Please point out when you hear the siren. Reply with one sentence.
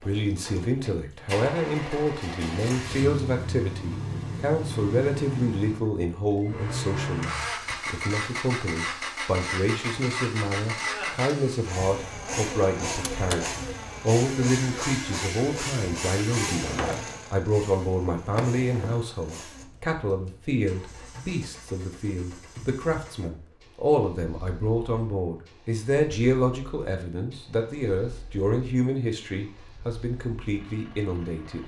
The siren can't be heard in this clip.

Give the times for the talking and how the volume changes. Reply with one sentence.
The talking can be heard from 0.0 to 31.6 s, at a steady volume.